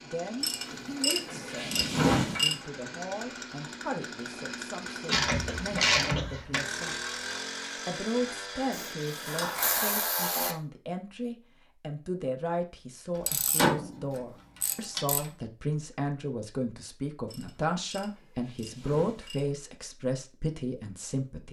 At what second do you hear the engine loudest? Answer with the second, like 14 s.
7 s.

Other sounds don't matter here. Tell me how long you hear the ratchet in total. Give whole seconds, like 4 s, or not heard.
10 s.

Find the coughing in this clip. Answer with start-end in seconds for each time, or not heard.
5.0-6.5.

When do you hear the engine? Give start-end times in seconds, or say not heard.
0.0-10.2.